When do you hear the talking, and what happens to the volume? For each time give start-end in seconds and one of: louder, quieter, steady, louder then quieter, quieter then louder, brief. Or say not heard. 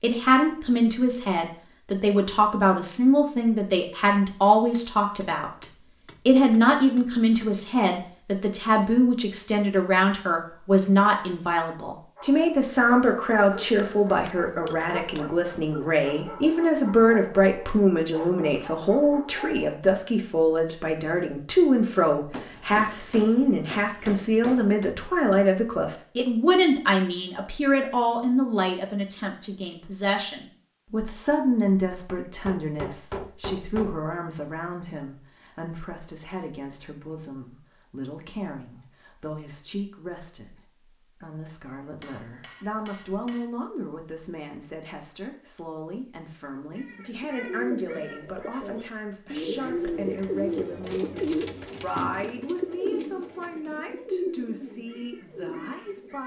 0.0-56.2 quieter.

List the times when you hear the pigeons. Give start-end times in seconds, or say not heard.
46.6-56.2.